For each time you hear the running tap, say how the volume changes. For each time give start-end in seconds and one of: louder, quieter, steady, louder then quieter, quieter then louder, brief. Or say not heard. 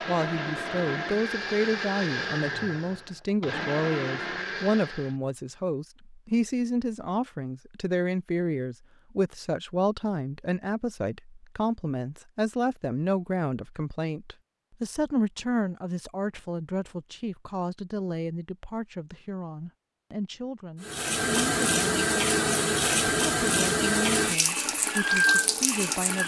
20.8-26.2 steady.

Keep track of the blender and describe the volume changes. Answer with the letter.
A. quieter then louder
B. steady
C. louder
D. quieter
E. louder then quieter
B.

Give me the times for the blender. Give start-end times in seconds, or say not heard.
0.0-5.2.